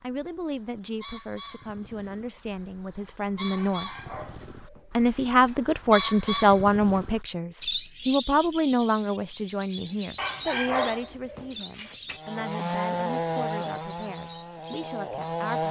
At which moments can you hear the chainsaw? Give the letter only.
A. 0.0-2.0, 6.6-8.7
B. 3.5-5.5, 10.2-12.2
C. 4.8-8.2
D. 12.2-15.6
D.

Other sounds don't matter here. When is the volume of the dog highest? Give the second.
11 s.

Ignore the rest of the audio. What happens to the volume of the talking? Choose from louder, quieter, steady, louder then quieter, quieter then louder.
louder then quieter.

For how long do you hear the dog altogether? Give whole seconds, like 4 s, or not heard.
4 s.